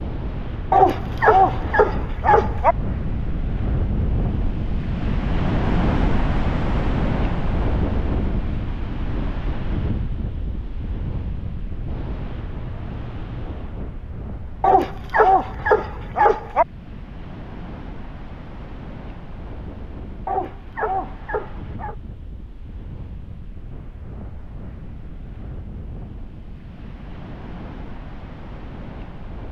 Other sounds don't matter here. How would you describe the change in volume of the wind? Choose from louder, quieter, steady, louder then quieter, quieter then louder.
quieter.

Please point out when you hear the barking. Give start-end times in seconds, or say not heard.
0.7-2.8, 14.6-16.6, 20.2-21.9.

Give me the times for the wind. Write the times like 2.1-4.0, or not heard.
0.0-29.4.